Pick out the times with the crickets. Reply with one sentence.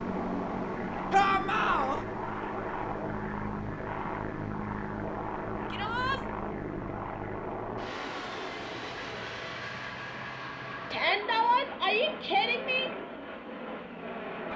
The crickets can't be heard in this clip.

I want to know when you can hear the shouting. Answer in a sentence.
The shouting can be heard from 1.1 to 2.0 s, from 5.7 to 6.2 s and from 10.9 to 12.9 s.